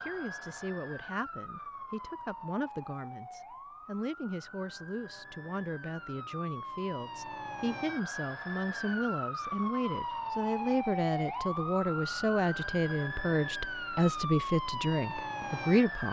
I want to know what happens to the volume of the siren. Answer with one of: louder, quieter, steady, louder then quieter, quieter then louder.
louder.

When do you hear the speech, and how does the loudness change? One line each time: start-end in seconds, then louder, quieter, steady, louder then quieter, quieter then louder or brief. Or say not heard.
0.0-16.0 louder.